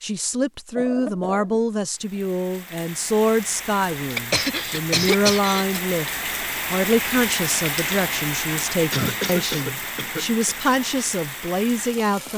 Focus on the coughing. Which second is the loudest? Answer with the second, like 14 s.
5 s.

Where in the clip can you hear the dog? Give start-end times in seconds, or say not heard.
not heard.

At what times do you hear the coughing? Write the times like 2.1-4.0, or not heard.
0.8-2.3, 4.2-5.8, 8.9-10.6.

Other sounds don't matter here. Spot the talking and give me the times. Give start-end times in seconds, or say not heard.
0.0-12.3.